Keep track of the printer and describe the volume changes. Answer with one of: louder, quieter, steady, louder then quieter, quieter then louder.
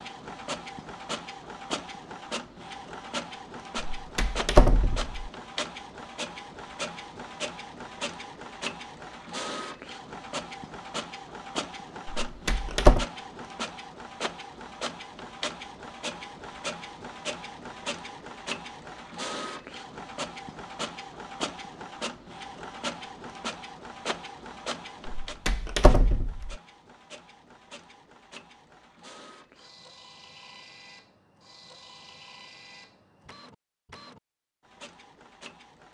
quieter.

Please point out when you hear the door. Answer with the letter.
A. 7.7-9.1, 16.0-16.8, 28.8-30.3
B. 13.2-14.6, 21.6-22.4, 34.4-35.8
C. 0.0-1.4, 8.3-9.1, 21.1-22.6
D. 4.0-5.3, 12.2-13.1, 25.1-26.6
D.